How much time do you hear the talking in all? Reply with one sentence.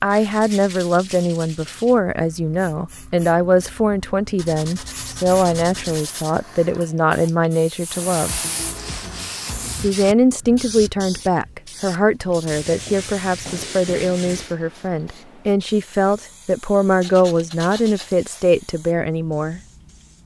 The talking can be heard for 18 seconds in total.